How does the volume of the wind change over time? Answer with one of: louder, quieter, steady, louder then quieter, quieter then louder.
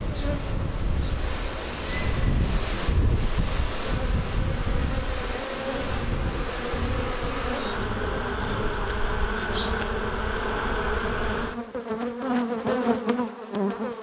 quieter.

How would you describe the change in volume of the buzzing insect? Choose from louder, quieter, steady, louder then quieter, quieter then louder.
louder.